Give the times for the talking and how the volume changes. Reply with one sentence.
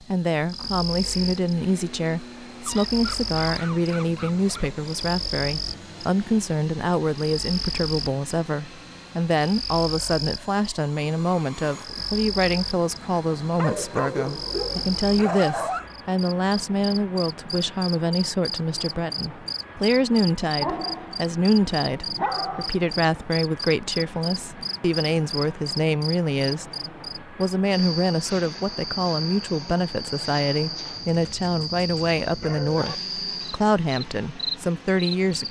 The talking can be heard from 0.1 to 35.4 s, at a steady volume.